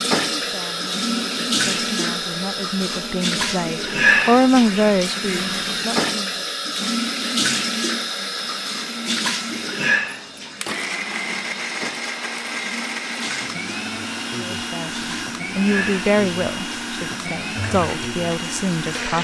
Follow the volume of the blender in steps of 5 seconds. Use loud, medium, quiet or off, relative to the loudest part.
medium, medium, loud, loud.